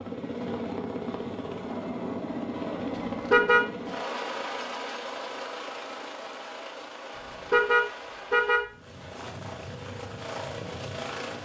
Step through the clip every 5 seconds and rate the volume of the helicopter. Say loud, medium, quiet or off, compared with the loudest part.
loud, medium, loud.